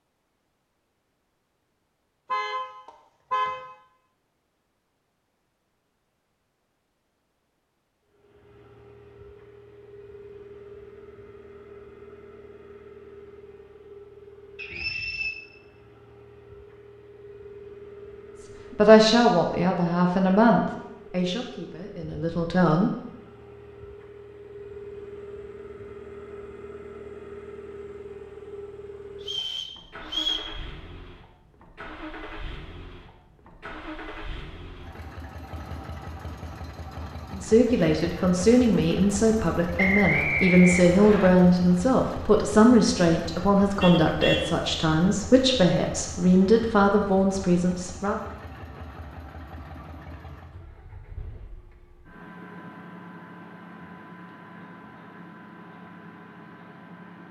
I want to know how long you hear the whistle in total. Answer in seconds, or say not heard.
4 s.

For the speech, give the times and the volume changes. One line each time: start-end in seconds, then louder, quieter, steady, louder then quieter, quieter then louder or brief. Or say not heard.
18.8-22.9 quieter
37.4-48.1 steady.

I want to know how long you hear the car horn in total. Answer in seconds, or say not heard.
2 s.